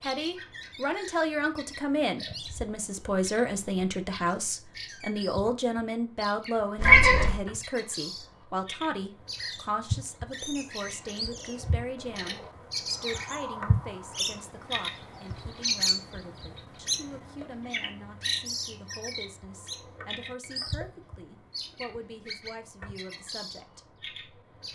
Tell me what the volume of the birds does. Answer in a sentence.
The volume of the birds goes up, then down.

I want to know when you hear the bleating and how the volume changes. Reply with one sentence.
You can't hear the bleating here.